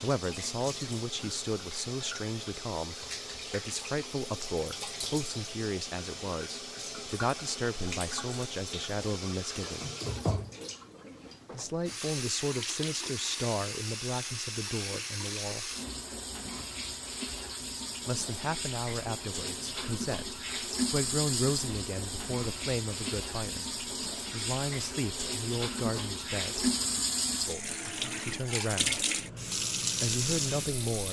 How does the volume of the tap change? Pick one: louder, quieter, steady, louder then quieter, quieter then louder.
louder.